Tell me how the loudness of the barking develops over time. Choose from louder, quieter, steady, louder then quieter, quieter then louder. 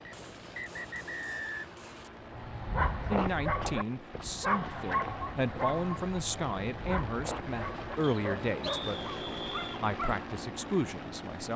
quieter.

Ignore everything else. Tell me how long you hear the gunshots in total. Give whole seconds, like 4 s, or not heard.
2 s.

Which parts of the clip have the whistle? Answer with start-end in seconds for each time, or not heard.
0.1-1.7, 8.0-9.8.